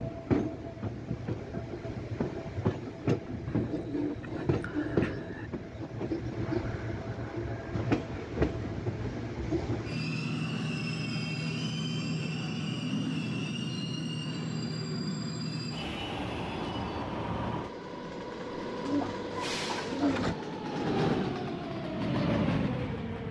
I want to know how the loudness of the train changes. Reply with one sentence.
The volume of the train stays about the same.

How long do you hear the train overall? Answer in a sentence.
The train can be heard for 23 seconds in total.